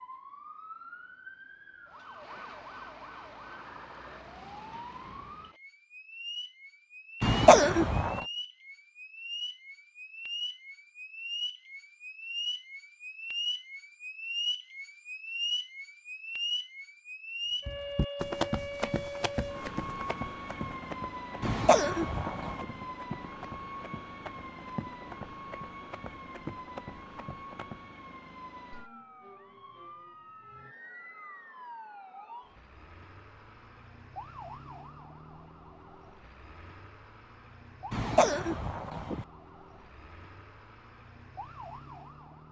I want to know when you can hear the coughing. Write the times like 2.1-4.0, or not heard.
7.2-8.2, 21.4-22.6, 37.9-39.2.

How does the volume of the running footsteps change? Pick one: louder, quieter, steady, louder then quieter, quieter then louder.
quieter.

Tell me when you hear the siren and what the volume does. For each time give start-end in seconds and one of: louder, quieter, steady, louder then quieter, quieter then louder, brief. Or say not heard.
0.0-42.4 louder then quieter.